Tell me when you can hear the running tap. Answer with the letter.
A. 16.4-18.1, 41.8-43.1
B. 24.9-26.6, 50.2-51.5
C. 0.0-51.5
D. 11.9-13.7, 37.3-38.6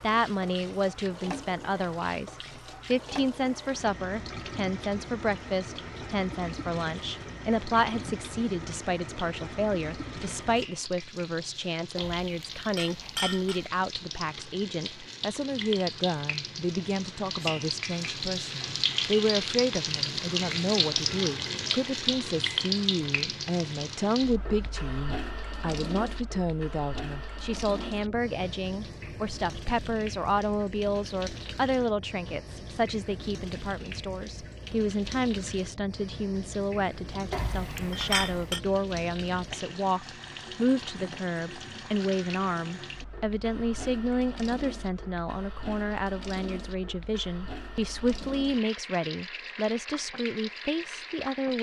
C.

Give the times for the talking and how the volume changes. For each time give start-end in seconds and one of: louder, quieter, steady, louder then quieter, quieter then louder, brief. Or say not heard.
0.0-51.5 steady.